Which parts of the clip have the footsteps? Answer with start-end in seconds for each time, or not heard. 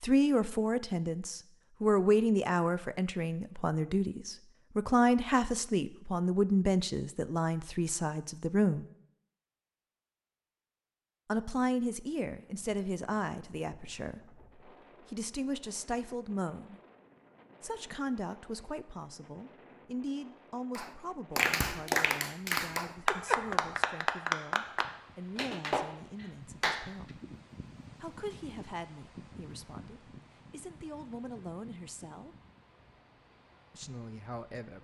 not heard.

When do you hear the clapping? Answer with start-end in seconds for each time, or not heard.
20.8-27.1.